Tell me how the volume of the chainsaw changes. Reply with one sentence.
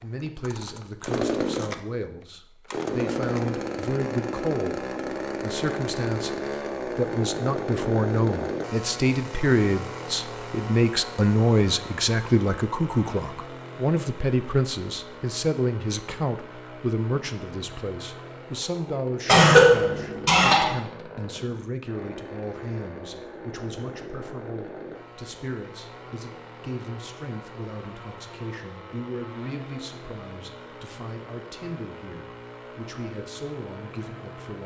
The loudness of the chainsaw goes down.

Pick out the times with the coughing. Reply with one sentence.
The coughing can be heard from 19.2 to 20.8 s.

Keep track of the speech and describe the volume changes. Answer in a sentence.
The volume of the speech goes up, then down.